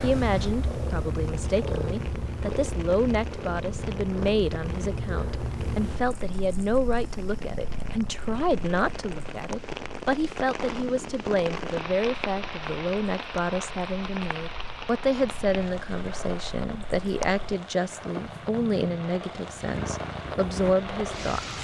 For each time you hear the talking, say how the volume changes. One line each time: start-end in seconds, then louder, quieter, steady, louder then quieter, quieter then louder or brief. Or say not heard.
0.0-21.5 steady.